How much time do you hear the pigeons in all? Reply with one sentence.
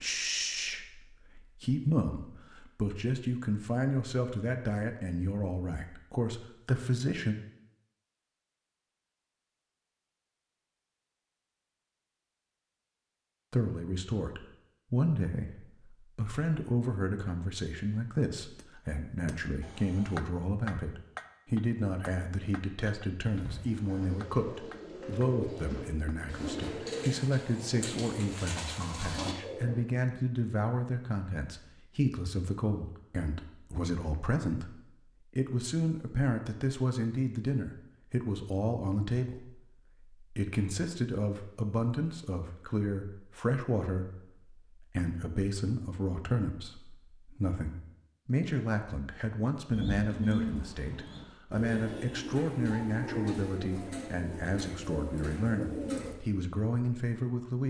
The pigeons can be heard for 13 seconds in total.